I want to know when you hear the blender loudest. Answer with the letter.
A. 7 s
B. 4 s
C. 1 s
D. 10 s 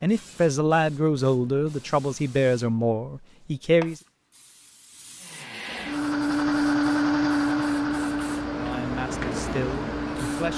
A.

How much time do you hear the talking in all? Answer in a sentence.
You can hear the talking for 6 seconds altogether.